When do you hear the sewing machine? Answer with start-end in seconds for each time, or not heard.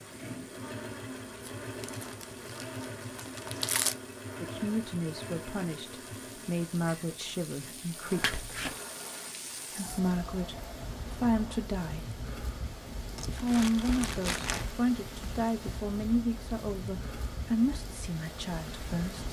0.0-11.6.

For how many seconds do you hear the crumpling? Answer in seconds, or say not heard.
5 s.